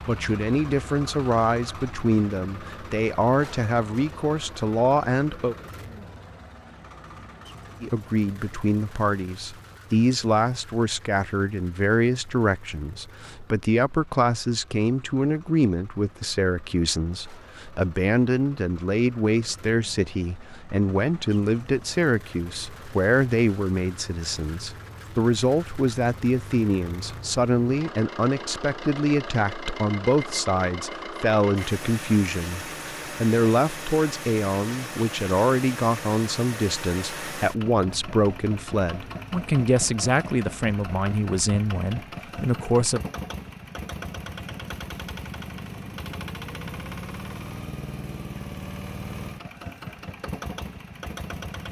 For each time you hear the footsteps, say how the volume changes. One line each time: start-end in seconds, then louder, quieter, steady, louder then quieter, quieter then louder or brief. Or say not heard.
not heard.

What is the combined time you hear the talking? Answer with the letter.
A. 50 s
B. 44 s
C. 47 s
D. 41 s
D.